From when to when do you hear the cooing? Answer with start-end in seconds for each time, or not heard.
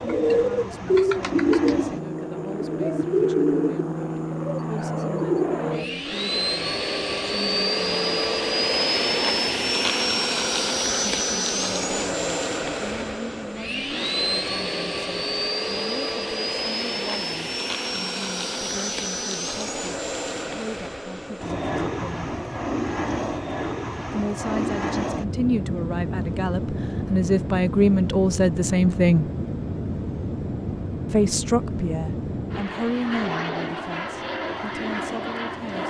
0.0-6.0.